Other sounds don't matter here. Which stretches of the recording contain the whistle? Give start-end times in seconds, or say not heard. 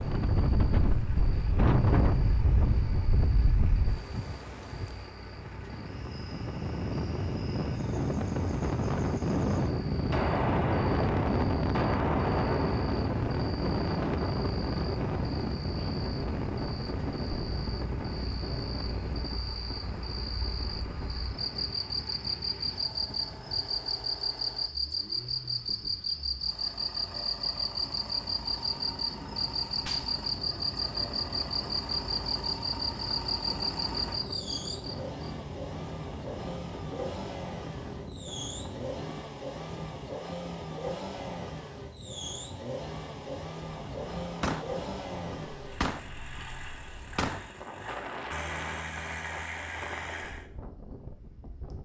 not heard.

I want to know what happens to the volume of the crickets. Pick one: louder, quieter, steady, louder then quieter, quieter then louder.
louder.